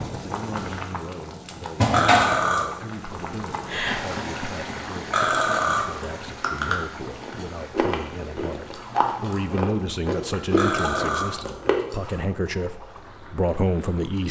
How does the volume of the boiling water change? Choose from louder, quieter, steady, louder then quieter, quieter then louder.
quieter.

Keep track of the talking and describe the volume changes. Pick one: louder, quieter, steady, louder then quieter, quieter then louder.
louder.